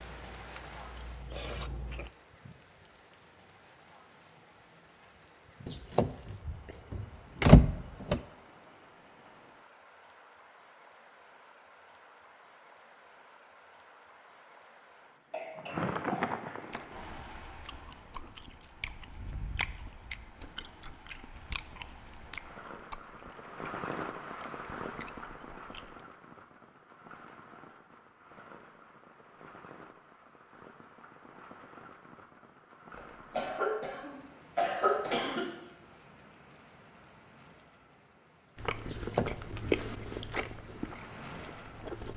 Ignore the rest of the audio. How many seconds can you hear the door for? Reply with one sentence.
You can hear the door for 3 seconds altogether.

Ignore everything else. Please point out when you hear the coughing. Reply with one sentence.
You can hear the coughing from 15.3 to 16.3 s and from 33.0 to 35.5 s.